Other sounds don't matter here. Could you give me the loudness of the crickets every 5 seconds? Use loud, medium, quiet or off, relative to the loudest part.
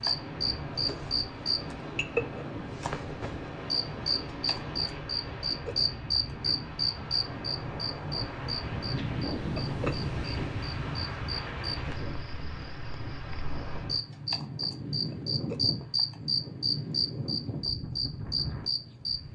loud, loud, medium, loud.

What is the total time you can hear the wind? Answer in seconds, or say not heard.
19 s.